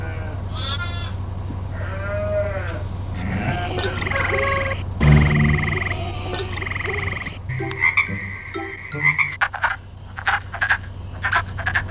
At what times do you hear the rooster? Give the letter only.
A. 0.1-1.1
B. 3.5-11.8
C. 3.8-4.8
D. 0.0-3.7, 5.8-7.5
C.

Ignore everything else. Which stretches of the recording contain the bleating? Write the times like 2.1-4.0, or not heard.
0.0-3.7, 5.8-7.5.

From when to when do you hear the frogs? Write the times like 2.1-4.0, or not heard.
3.5-11.8.